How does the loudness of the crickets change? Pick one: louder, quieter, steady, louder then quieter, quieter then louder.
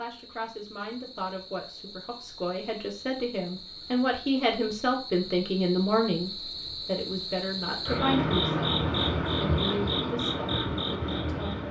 louder.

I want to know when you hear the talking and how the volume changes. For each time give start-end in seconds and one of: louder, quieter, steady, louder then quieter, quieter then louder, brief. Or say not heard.
0.0-11.6 louder then quieter.